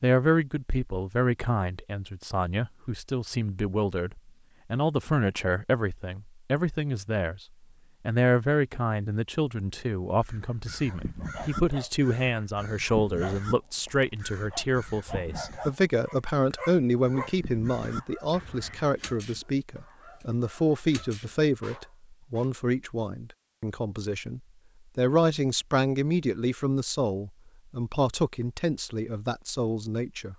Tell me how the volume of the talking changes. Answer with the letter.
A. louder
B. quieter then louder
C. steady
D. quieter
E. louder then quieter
C.